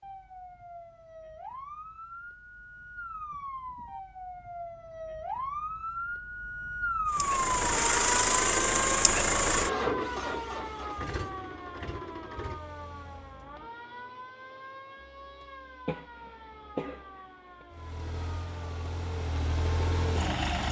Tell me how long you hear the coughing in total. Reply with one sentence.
The coughing can be heard for 2 seconds in total.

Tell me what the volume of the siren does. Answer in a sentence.
The loudness of the siren goes up, then down.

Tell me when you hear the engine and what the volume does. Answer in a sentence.
You can hear the engine from 7.1 to 13.5 s, getting quieter; and briefly from 17.7 to 20.6 s.